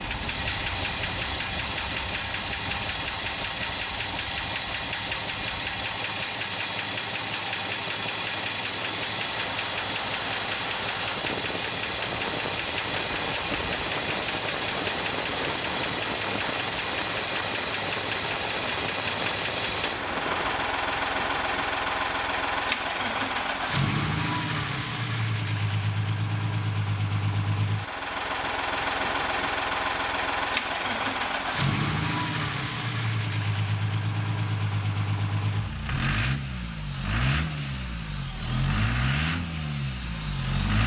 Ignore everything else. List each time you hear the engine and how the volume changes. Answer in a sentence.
The engine can be heard from 0.0 to 40.8 s, at a steady volume.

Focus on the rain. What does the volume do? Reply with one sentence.
The volume of the rain goes up.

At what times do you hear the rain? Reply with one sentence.
You can hear the rain from 0.0 to 20.6 s.